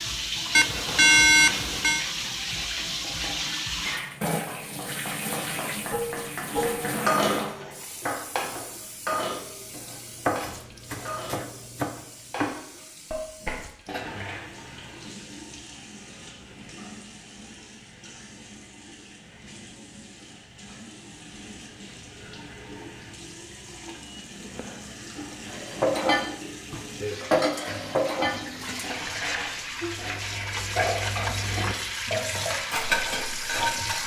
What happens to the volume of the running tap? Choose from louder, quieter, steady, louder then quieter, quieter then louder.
quieter then louder.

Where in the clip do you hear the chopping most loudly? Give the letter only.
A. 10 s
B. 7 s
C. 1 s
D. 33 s
A.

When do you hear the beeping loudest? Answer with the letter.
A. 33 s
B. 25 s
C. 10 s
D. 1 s
D.